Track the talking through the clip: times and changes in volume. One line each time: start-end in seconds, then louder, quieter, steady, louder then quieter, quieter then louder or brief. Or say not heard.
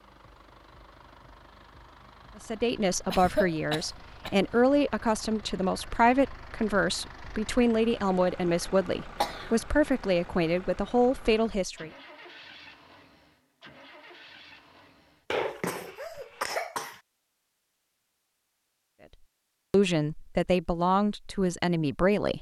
2.4-11.9 steady
19.7-22.3 brief.